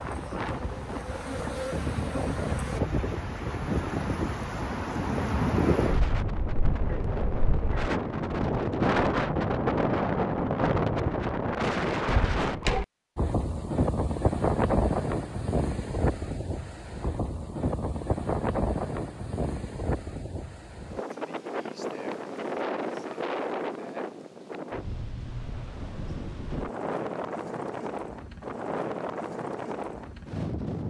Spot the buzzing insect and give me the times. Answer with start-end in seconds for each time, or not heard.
0.0-2.8.